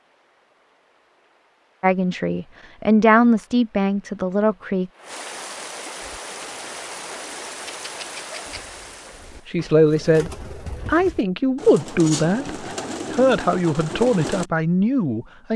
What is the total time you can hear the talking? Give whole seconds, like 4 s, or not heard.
9 s.